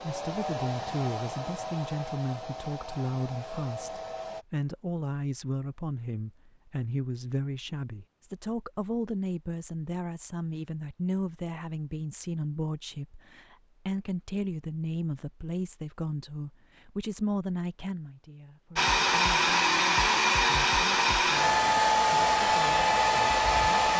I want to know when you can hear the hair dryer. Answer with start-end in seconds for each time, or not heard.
0.0-4.5, 18.8-23.9.